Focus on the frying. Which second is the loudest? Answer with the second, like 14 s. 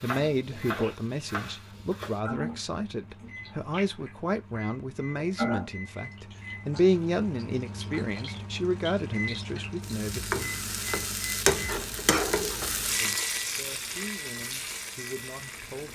12 s.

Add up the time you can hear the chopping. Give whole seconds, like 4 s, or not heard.
2 s.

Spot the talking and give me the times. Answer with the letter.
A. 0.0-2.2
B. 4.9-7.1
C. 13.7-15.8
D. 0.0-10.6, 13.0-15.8
D.